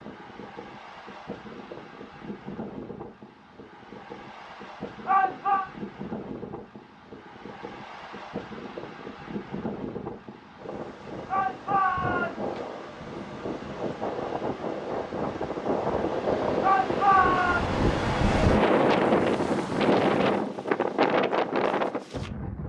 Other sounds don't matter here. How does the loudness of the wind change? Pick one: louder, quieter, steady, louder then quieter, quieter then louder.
louder.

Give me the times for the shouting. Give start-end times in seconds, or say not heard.
5.0-5.7, 11.2-12.4, 16.6-17.6.